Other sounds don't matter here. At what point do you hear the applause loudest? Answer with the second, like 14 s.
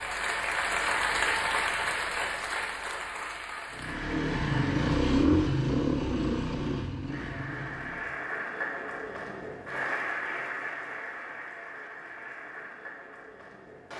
1 s.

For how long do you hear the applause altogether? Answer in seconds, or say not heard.
12 s.